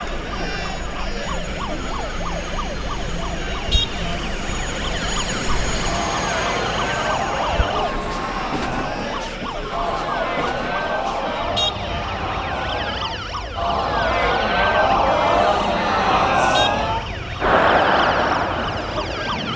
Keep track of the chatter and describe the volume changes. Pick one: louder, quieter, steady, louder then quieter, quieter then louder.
louder.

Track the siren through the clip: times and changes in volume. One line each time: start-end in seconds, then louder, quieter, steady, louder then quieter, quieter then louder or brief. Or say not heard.
0.0-19.5 steady.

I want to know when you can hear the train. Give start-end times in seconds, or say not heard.
0.0-19.5.